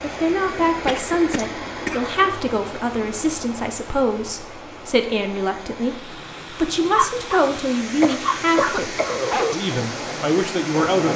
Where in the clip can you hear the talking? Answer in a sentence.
You can hear the talking from 0.0 to 11.1 s.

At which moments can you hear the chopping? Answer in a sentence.
The chopping can't be heard in this clip.